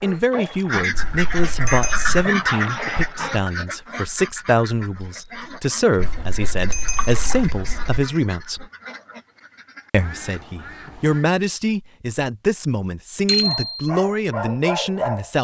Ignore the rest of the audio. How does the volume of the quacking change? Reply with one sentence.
The loudness of the quacking goes down.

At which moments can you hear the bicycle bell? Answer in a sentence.
You can hear the bicycle bell from 0.9 to 2.2 s, from 6.0 to 8.0 s and from 13.2 to 13.8 s.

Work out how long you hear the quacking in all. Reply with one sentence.
The quacking can be heard for 11 seconds in total.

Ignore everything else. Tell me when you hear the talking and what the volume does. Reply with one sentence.
The talking can be heard from 0.0 to 8.7 s, at a steady volume; and from 9.9 to 15.3 s, at a steady volume.